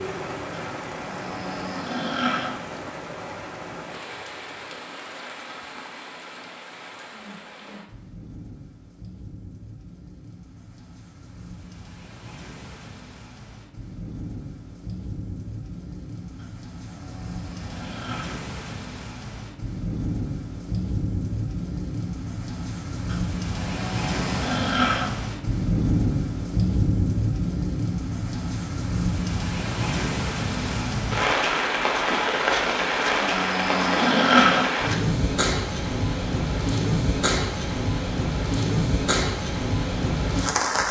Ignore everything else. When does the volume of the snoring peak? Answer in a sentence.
The volume of the snoring peaks at 34 seconds.